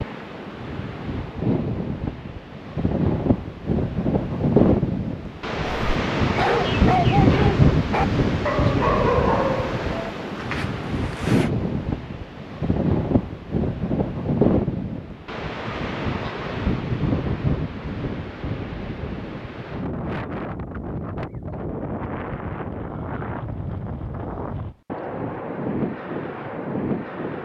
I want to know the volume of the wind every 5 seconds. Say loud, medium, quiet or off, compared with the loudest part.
loud, loud, loud, medium, medium, medium.